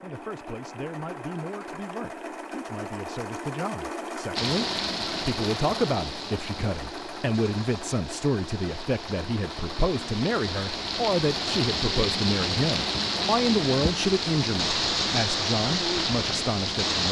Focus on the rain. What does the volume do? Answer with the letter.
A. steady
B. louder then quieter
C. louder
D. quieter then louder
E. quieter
D.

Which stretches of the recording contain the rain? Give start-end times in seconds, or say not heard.
4.3-17.0.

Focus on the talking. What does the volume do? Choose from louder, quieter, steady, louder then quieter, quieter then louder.
louder.